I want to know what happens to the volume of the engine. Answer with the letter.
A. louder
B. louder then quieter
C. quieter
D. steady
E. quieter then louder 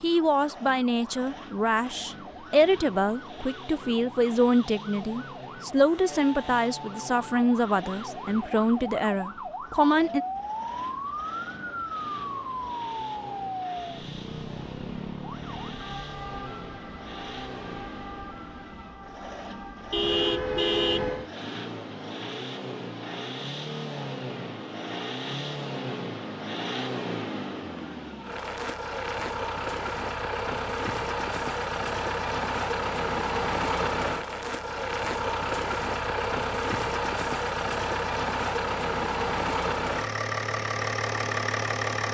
A.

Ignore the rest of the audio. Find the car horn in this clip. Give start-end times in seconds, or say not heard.
19.9-21.3.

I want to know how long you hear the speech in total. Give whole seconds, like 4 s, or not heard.
10 s.